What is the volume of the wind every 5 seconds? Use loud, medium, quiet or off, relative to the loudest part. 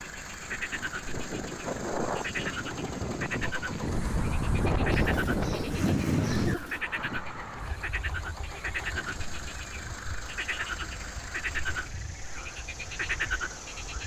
loud, loud, quiet.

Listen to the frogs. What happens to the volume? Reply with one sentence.
The volume of the frogs stays about the same.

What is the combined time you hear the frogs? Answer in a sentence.
The frogs can be heard for 14 seconds in total.